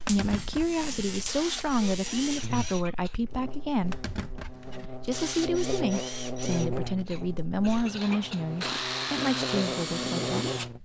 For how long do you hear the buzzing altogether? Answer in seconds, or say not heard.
11 s.